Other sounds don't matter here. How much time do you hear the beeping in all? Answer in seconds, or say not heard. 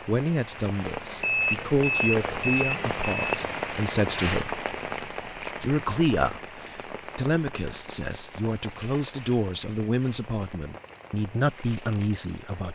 2 s.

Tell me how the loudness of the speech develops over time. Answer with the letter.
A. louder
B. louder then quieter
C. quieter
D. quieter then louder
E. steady
E.